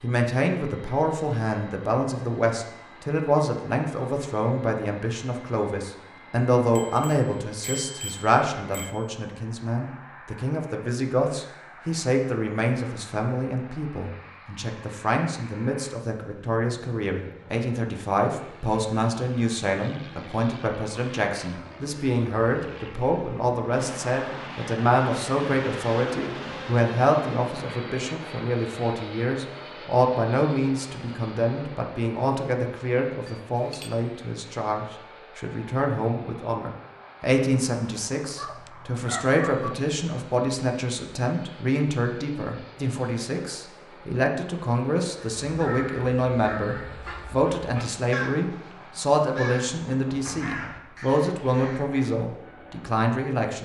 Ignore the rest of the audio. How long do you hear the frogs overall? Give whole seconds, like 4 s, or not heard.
not heard.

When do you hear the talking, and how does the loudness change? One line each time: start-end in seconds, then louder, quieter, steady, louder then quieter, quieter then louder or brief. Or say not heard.
0.0-53.6 steady.